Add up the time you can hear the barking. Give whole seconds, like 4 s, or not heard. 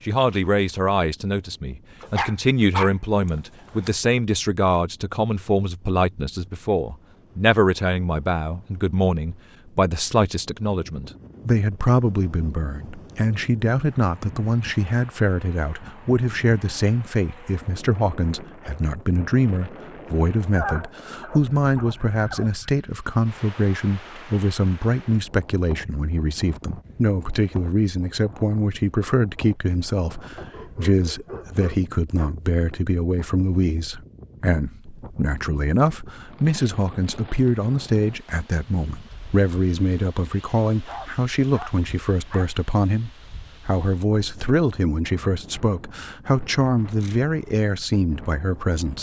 8 s.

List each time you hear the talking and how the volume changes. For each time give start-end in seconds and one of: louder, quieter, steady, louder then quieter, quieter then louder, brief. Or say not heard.
0.1-48.9 steady.